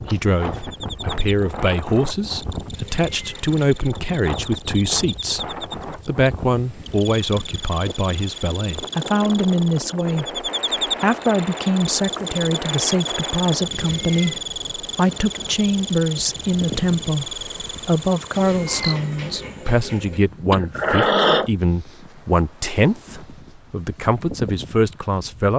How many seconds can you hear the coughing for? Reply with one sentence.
The coughing can be heard for 2 seconds in total.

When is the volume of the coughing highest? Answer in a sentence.
The volume of the coughing peaks at 21 seconds.